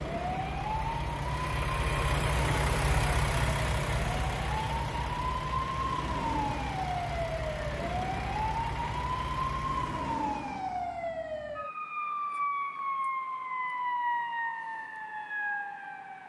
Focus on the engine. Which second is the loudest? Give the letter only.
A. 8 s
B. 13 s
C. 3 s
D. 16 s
C.